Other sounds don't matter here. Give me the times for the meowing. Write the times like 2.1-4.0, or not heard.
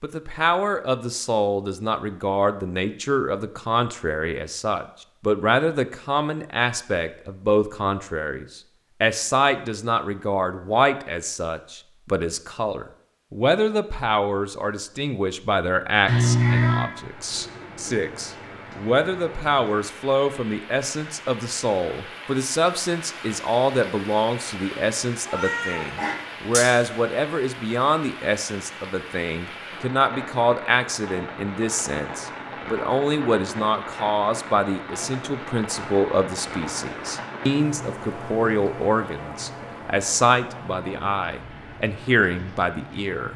16.1-16.9, 25.2-26.8.